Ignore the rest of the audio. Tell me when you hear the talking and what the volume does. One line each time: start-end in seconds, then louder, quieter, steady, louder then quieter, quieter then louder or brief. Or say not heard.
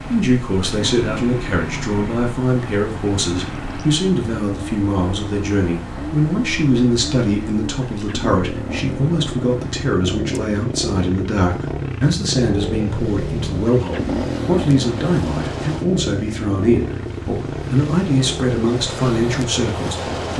0.0-20.3 steady.